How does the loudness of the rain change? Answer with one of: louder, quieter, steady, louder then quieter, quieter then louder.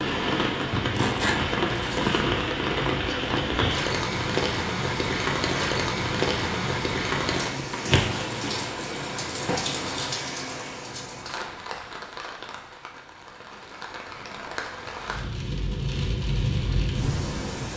quieter then louder.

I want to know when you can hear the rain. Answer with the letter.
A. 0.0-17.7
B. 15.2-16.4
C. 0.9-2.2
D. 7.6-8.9
A.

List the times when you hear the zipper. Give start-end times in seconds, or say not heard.
0.9-2.2.